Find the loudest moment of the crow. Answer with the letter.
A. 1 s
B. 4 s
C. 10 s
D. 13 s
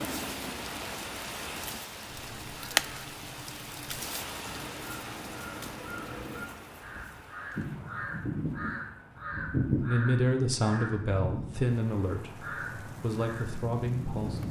C.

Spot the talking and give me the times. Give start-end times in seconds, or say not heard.
9.8-14.4.